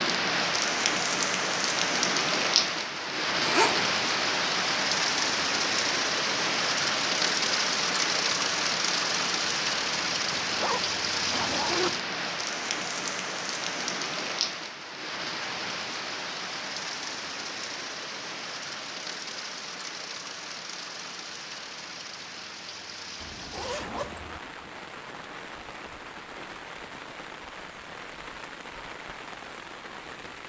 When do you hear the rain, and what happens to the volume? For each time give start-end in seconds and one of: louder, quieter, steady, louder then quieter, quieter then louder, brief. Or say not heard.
0.0-30.4 quieter.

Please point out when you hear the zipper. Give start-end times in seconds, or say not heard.
3.4-4.0, 10.4-11.9, 23.2-24.4.